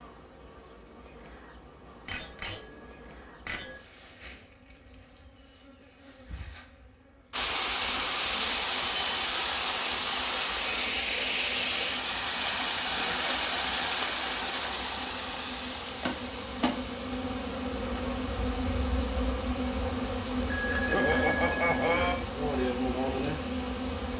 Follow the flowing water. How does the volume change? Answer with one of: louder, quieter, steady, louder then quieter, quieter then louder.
quieter.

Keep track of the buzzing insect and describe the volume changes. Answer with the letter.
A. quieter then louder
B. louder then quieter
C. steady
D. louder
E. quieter
D.